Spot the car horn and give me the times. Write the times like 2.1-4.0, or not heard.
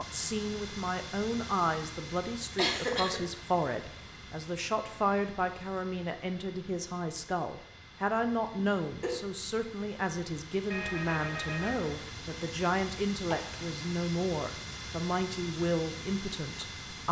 10.7-12.1.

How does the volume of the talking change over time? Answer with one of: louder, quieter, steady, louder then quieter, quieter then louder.
steady.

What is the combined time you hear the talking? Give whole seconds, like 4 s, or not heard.
17 s.